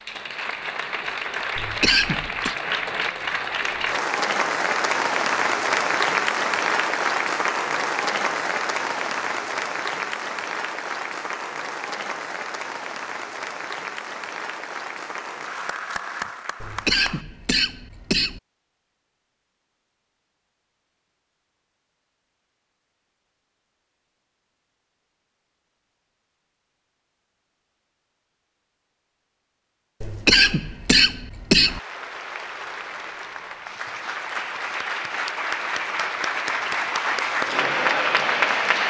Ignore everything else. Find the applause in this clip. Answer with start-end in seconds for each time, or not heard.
0.0-17.2, 31.6-38.8.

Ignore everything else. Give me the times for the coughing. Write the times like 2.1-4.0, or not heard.
1.6-2.5, 16.6-18.4, 30.0-31.8.